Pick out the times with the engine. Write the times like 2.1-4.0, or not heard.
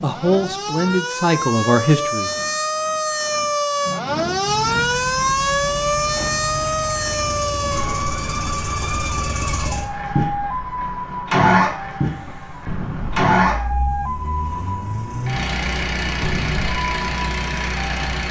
4.4-18.2.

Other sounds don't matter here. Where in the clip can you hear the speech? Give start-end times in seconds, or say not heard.
0.0-2.3.